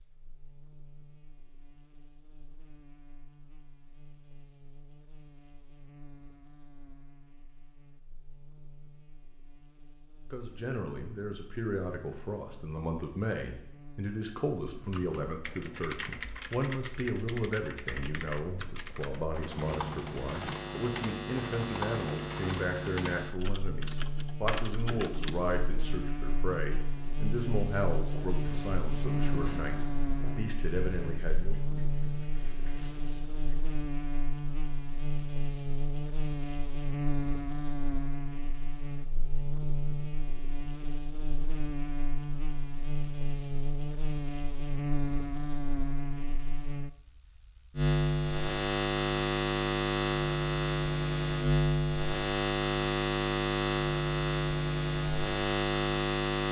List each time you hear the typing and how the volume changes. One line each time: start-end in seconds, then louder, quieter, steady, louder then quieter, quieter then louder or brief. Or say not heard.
14.7-25.6 steady.